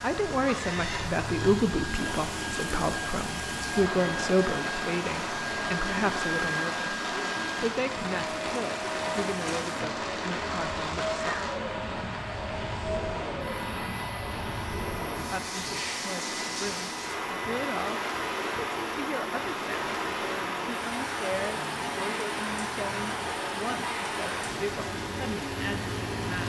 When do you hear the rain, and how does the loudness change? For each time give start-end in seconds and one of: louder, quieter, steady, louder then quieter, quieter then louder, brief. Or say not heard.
0.0-26.4 steady.